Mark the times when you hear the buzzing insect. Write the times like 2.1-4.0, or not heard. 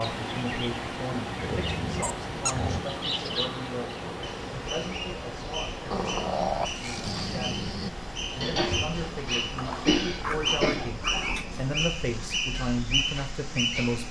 not heard.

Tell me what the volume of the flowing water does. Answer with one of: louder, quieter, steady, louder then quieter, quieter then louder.
quieter.